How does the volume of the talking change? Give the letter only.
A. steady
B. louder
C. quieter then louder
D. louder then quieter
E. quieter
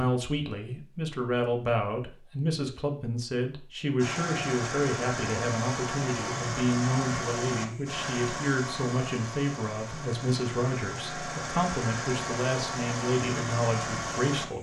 A.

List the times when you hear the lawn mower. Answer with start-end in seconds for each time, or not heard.
4.0-14.5.